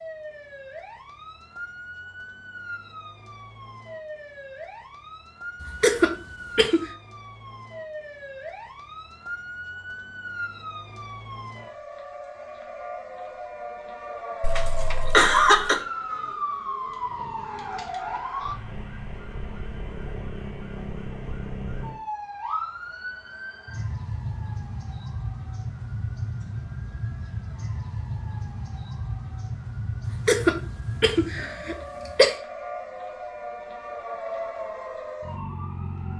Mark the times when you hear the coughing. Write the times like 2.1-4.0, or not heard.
5.6-6.9, 14.4-15.8, 30.1-32.4.